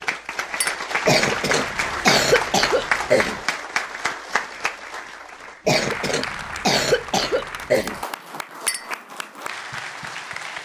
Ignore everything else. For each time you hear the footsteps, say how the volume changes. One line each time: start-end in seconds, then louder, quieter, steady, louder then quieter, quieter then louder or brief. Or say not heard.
not heard.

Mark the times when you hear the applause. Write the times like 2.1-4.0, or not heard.
0.0-10.6.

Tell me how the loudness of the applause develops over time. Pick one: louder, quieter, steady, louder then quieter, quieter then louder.
quieter.